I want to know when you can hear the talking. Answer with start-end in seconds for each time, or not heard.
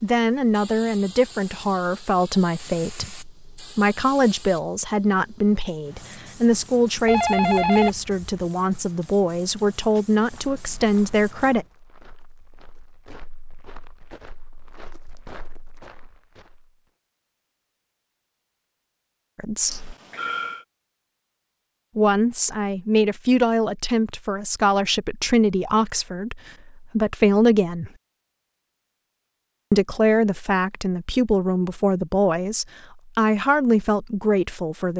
0.0-11.7, 19.4-19.9, 21.9-27.9, 29.7-34.9.